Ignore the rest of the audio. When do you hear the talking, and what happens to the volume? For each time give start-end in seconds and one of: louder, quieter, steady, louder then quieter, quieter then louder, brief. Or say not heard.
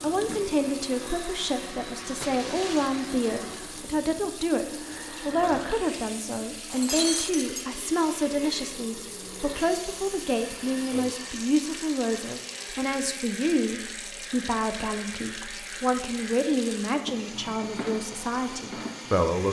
0.0-19.4 steady.